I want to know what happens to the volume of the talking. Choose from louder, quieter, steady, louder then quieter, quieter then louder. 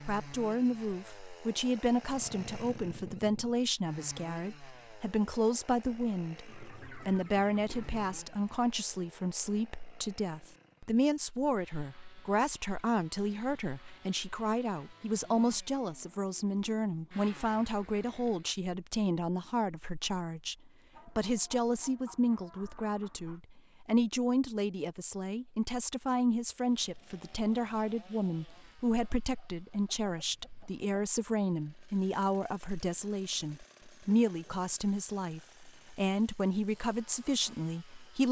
steady.